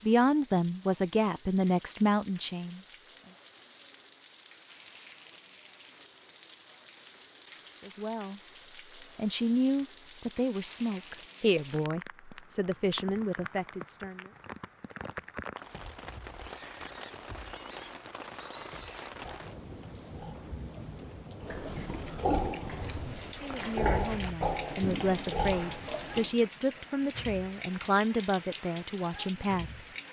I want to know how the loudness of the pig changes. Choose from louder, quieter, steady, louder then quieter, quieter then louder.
louder.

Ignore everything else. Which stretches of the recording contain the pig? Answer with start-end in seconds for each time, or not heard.
16.4-26.4.